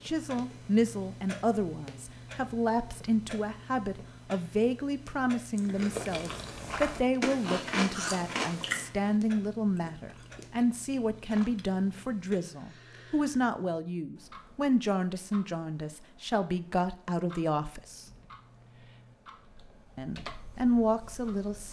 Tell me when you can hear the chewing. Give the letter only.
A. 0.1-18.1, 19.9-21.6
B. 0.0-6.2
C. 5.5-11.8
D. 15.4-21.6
C.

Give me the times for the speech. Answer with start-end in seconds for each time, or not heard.
0.1-18.1, 19.9-21.6.